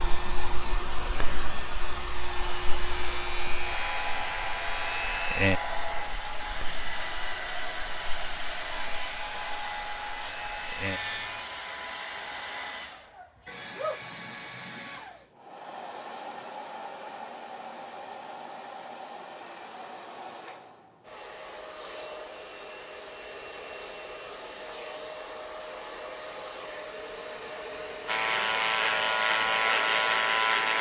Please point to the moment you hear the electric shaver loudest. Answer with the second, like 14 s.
30 s.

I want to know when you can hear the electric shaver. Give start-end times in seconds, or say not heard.
0.0-11.4, 28.1-30.7.